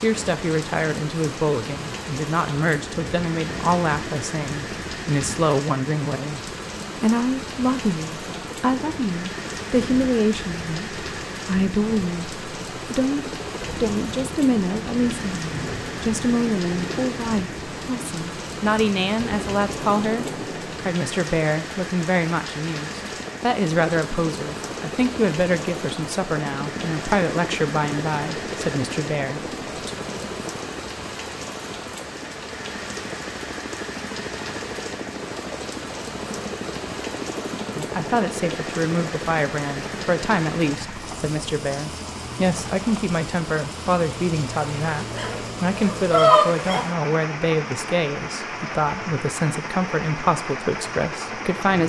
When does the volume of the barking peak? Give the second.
46 s.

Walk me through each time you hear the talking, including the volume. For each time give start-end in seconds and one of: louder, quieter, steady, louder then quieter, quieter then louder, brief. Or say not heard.
0.0-29.9 steady
37.8-51.8 steady.